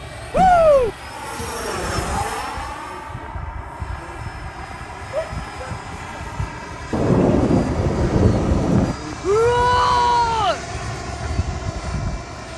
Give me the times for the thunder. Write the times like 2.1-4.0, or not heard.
6.9-8.9.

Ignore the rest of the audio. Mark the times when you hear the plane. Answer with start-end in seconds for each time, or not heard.
0.0-12.5.